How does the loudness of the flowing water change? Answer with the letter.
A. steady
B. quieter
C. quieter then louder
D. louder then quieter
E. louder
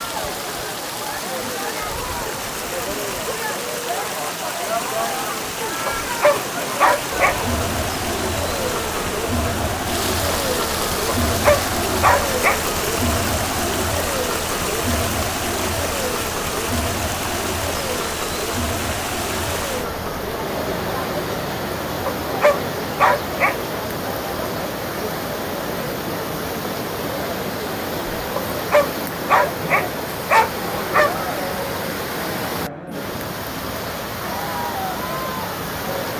A.